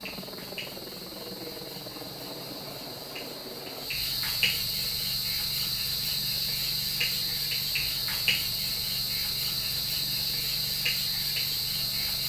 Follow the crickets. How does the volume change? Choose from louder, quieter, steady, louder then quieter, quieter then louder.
louder.